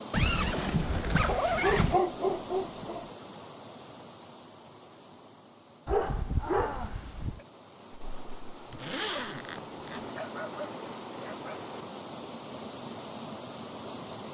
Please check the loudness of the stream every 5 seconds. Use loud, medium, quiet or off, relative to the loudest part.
loud, medium, loud.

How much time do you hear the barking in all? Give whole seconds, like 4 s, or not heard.
5 s.